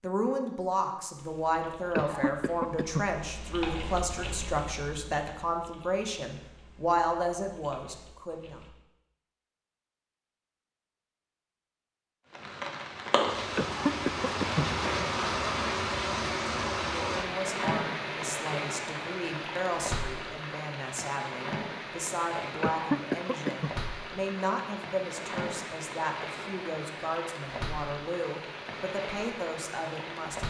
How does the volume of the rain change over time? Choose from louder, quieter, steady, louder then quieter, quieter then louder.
quieter.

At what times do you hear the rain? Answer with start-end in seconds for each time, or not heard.
12.3-30.4.